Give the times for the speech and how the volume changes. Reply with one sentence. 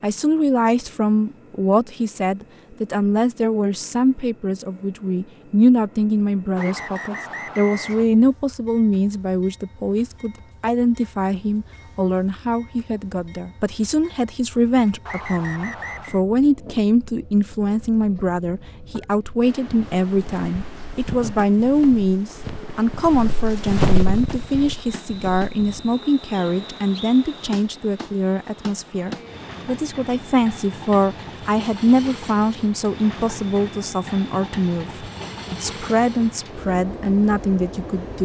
The speech can be heard from 0.0 to 38.2 s, at a steady volume.